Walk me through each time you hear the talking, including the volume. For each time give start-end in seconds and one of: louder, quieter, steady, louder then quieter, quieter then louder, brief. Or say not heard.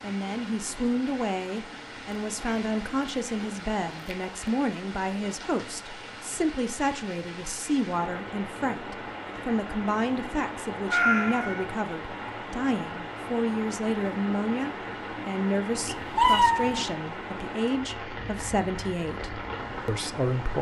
0.0-20.5 steady.